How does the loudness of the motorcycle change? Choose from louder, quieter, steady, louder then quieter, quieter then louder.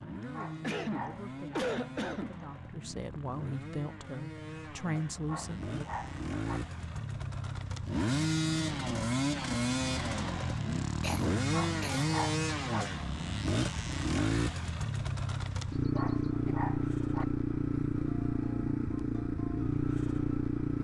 louder.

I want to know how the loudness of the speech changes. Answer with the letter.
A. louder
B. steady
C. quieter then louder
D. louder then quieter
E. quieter
A.